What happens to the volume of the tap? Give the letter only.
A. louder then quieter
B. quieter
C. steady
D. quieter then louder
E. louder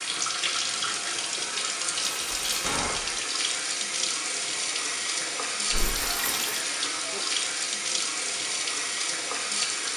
C.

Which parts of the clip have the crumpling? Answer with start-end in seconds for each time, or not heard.
2.0-2.5, 5.8-6.7.